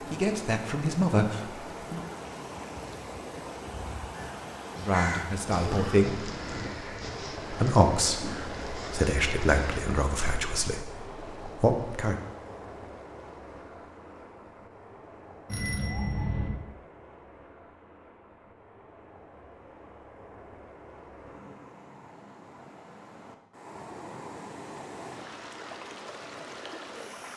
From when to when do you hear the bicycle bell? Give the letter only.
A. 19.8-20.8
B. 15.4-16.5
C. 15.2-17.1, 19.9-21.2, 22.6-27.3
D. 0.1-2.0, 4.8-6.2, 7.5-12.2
B.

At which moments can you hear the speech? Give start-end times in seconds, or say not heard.
0.1-2.0, 4.8-6.2, 7.5-12.2.